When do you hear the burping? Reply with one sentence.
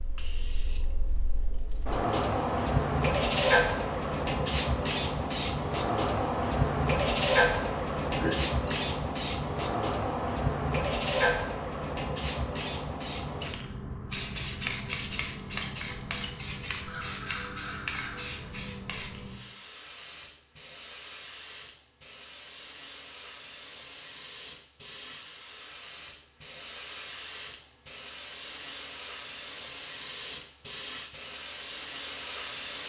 You can hear the burping from 8.2 to 8.8 s.